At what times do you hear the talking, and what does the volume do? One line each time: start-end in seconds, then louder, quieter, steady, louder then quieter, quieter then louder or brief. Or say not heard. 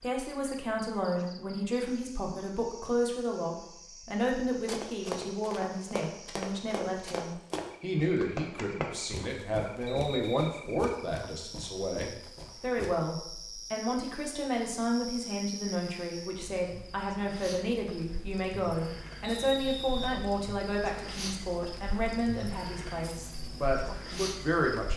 0.0-24.9 steady.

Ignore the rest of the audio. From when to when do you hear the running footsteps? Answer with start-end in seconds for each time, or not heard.
4.5-12.9.